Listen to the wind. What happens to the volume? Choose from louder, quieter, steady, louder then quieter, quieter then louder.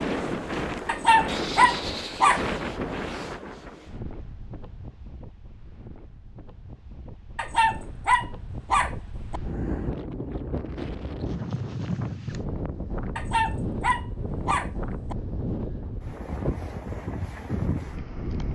quieter then louder.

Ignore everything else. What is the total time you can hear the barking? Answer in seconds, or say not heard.
6 s.